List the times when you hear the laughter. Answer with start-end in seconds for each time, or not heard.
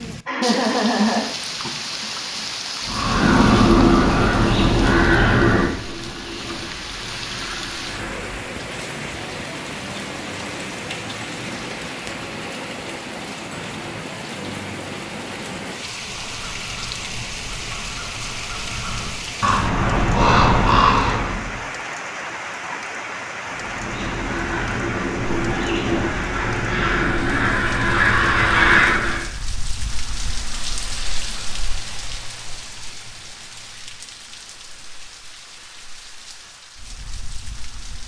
0.2-1.7.